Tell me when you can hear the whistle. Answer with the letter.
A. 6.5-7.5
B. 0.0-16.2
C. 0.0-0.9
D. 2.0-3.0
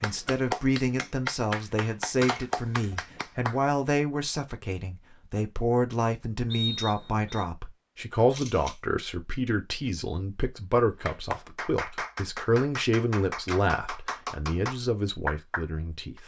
A.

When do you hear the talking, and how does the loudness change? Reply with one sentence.
The talking can be heard from 0.0 to 16.2 s, at a steady volume.